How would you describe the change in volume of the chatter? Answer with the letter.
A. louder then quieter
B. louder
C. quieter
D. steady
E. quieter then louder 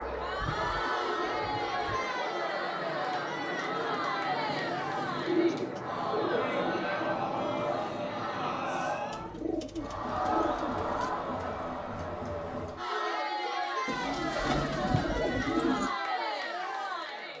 D.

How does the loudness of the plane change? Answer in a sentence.
The volume of the plane stays about the same.